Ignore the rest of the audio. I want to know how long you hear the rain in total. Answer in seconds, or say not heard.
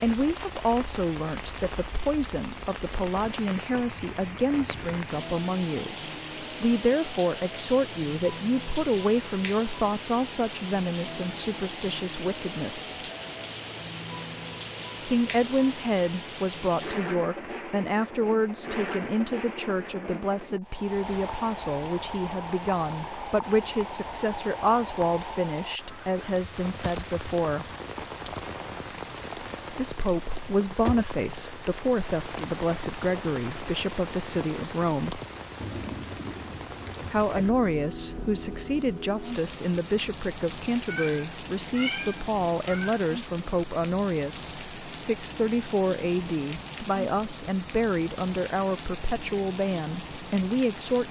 51 s.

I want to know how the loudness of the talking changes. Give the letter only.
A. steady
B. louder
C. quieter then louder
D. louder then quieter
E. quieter
A.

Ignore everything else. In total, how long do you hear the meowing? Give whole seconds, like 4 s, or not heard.
2 s.